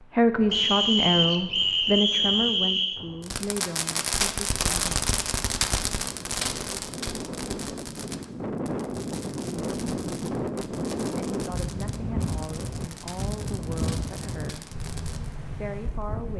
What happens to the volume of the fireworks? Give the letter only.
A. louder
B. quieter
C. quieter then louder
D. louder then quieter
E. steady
B.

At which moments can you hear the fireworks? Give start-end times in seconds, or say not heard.
3.2-15.3.